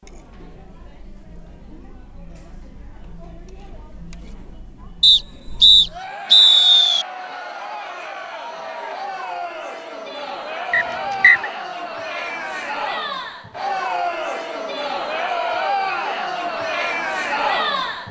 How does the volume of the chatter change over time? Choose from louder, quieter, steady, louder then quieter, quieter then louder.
louder.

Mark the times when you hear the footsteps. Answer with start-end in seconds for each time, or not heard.
not heard.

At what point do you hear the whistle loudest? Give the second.
6 s.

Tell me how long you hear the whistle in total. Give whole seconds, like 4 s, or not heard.
3 s.